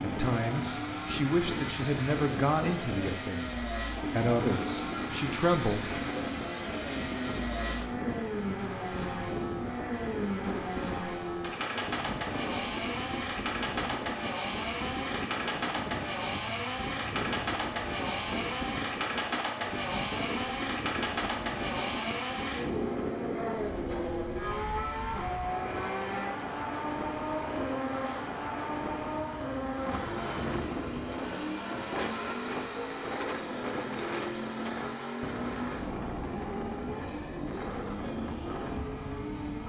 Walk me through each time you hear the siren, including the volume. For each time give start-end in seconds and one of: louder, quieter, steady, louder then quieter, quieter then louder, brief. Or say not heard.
not heard.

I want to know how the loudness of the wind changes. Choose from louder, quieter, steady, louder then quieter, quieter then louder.
steady.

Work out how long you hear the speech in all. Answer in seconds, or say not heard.
6 s.